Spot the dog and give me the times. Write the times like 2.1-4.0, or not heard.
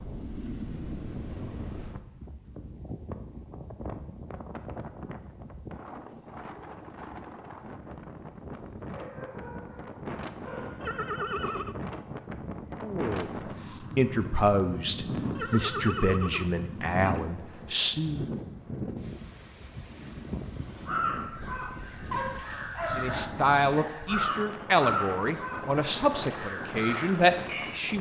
8.9-10.8, 22.1-23.9.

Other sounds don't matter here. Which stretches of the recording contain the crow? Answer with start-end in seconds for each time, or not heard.
20.9-27.8.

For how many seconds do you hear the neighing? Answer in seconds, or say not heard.
3 s.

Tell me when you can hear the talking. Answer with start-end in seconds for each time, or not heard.
12.8-18.3, 22.9-27.9.